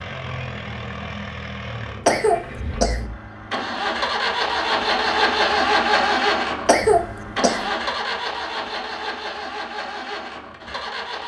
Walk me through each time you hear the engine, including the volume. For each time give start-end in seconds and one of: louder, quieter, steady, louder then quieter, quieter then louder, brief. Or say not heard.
0.0-11.2 louder then quieter.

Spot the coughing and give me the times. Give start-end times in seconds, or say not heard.
2.0-3.0, 6.7-7.7.